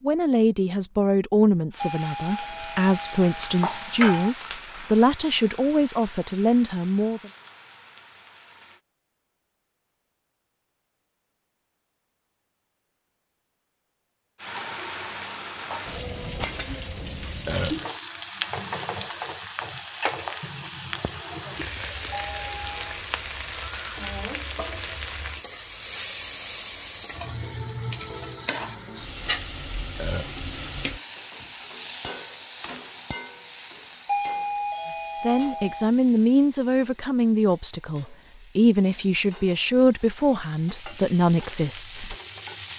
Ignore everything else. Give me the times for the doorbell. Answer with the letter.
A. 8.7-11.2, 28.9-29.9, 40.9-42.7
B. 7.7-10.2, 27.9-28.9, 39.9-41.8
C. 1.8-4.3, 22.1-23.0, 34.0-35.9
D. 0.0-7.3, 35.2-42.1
C.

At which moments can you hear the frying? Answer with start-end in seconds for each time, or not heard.
1.7-8.8, 14.4-42.7.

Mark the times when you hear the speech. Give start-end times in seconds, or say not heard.
0.0-7.3, 35.2-42.1.